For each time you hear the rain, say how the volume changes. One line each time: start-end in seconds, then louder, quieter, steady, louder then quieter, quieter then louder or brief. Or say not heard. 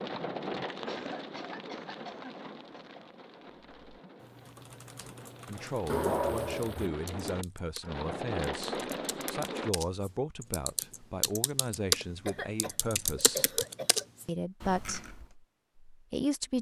0.0-9.8 quieter then louder.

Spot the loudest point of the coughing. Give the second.
6 s.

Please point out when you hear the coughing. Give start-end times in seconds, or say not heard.
0.8-2.8, 5.8-6.9, 12.2-14.1.